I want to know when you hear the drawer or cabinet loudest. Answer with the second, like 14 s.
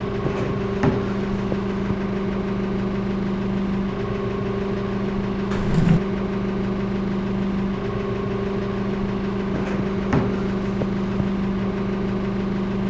6 s.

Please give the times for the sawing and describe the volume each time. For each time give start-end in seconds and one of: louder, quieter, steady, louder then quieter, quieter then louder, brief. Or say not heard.
not heard.